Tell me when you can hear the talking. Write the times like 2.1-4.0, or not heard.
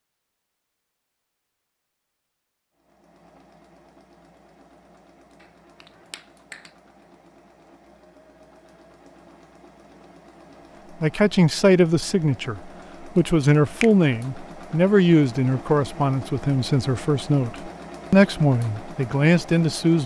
11.0-20.0.